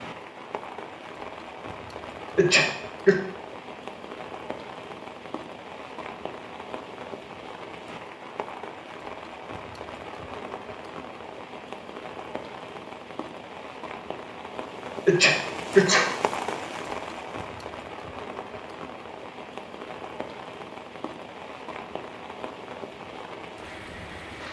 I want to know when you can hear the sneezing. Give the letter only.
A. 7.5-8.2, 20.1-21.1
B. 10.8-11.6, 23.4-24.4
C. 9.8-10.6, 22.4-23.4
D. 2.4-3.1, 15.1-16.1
D.